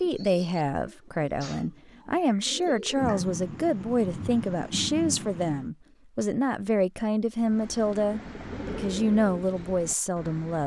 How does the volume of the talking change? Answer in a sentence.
The volume of the talking stays about the same.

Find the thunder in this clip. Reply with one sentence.
The thunder can be heard from 3.0 to 5.7 s.